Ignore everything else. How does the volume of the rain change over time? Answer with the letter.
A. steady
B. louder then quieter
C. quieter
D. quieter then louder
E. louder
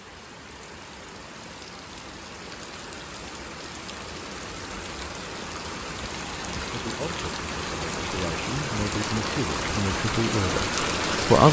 E.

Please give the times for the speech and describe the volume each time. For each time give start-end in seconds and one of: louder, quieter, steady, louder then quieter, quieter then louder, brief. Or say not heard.
6.7-11.4 louder.